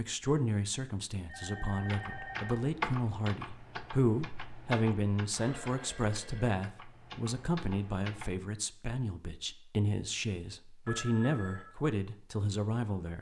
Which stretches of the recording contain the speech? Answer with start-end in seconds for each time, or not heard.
0.0-13.1.